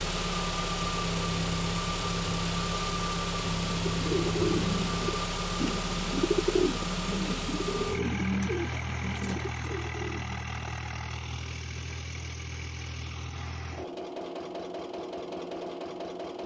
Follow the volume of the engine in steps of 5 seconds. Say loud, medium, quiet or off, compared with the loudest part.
loud, loud, medium, medium.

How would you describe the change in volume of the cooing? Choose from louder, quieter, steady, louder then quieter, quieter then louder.
quieter.